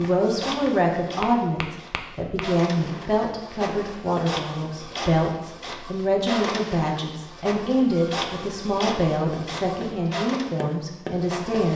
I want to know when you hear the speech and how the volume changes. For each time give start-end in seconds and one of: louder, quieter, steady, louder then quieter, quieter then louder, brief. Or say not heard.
0.0-11.7 steady.